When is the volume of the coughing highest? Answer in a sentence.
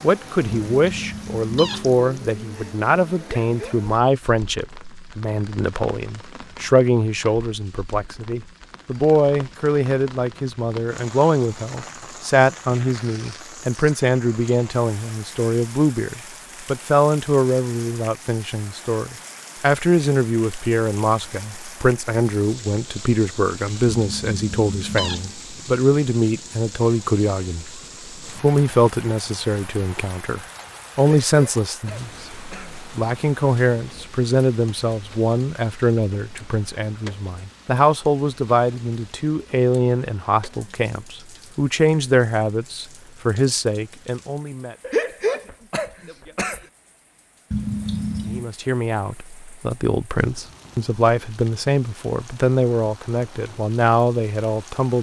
The loudest moment of the coughing is at 45 seconds.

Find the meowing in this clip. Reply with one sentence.
The meowing can be heard from 0.5 to 1.9 s, from 23.9 to 25.4 s and from 47.5 to 48.5 s.